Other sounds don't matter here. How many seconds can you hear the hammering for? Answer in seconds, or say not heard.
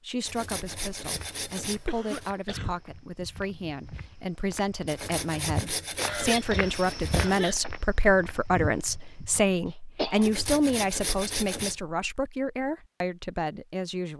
not heard.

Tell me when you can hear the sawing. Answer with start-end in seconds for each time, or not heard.
0.2-2.4, 4.8-7.5, 10.2-11.8.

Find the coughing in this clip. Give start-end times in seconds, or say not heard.
1.9-2.8, 6.0-7.6, 9.7-10.3.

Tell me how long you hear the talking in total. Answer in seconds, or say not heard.
14 s.